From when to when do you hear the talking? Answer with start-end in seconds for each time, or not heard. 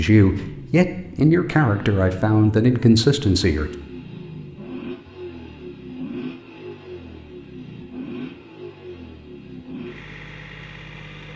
0.0-3.7.